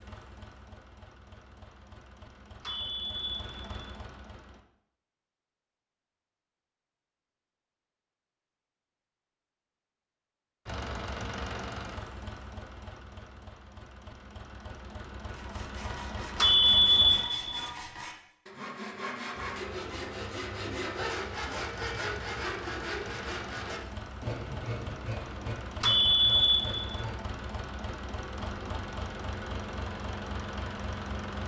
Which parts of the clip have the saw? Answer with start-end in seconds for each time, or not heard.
15.2-27.4.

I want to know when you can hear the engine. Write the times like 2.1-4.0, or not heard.
0.0-4.7, 10.7-17.3, 19.3-31.4.